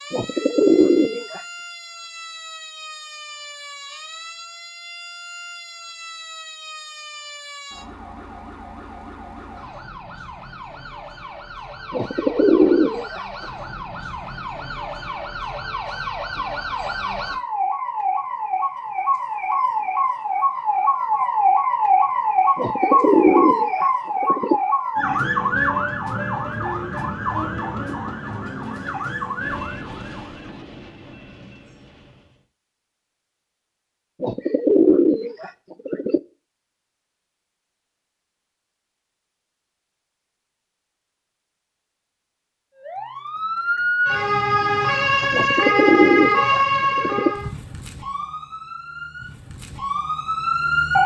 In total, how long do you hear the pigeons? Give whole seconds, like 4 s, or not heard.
9 s.